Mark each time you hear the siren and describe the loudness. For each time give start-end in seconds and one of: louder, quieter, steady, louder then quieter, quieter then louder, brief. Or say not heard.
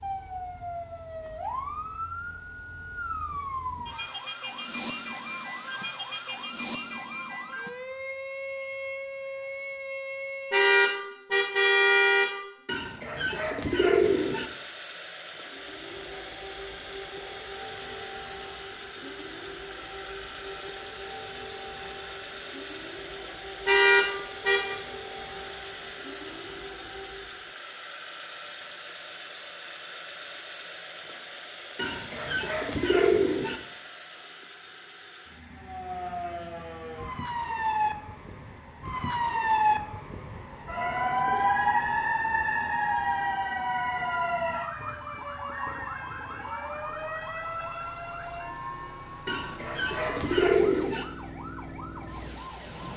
0.0-10.7 steady
15.4-27.6 steady
35.5-52.9 louder then quieter.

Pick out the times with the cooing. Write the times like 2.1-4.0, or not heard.
12.7-14.4, 31.8-33.6, 49.2-51.0.